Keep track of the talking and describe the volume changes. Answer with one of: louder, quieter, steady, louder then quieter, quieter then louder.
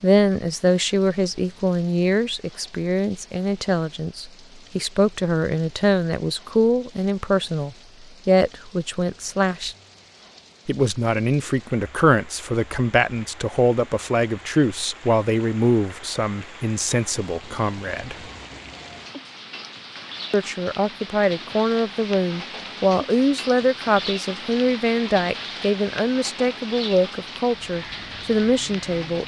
steady.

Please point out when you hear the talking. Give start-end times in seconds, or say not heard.
0.0-9.8, 10.7-18.1, 20.3-29.2.